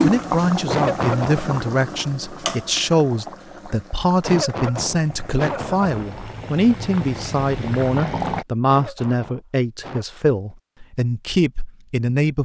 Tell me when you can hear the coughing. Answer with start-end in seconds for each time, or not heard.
0.7-1.4, 4.2-5.9, 8.7-10.1.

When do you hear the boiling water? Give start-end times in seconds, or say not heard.
0.0-8.4.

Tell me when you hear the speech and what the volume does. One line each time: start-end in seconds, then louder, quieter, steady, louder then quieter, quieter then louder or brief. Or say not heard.
0.0-12.4 steady.